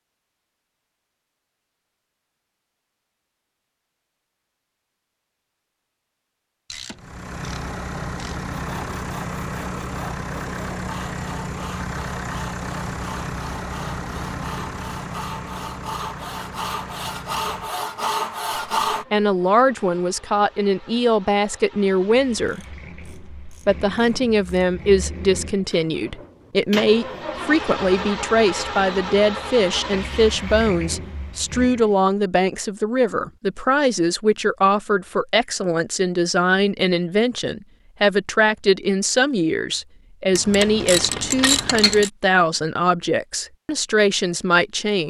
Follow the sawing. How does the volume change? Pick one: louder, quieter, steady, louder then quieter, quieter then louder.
louder.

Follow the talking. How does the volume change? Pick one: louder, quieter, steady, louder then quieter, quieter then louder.
steady.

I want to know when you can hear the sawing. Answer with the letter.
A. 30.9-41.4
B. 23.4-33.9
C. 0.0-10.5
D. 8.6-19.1
D.